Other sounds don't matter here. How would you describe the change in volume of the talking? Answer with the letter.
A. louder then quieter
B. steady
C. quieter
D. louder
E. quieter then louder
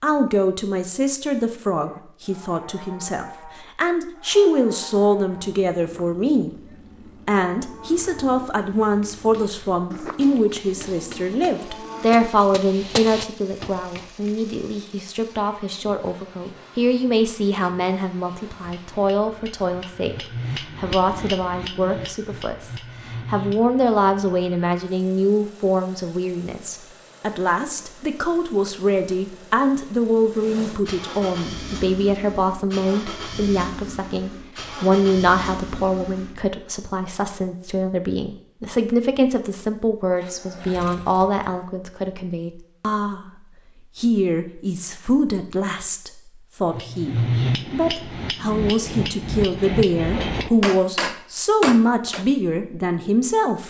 B.